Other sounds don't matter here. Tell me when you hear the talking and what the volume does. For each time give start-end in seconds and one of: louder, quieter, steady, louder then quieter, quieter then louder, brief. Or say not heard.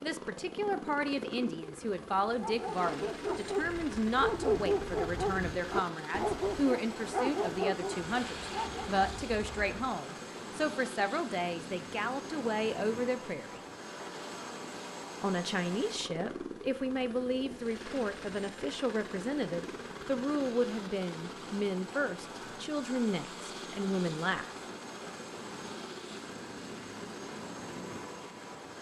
0.0-13.7 steady
15.2-24.5 steady.